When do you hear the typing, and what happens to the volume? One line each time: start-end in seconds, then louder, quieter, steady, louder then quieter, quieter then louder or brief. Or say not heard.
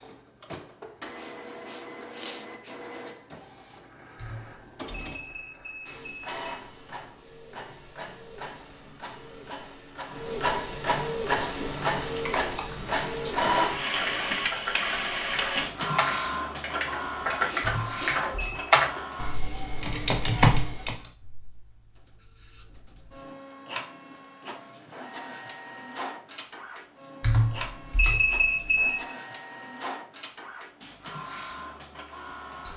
11.3-20.9 louder.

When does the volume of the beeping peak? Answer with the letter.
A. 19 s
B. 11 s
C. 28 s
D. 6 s
C.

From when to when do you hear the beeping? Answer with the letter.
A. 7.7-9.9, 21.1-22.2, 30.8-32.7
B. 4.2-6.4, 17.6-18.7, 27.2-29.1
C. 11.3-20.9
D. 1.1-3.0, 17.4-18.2
B.